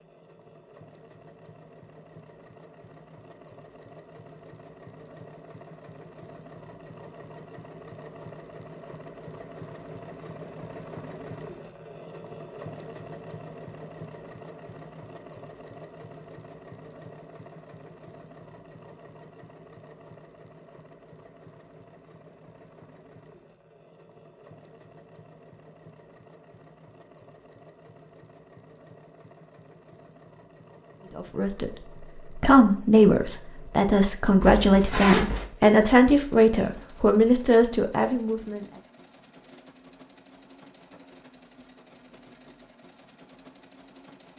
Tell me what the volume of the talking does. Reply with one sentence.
The volume of the talking stays about the same.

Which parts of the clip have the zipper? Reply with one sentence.
You can hear the zipper from 34.4 to 35.5 s.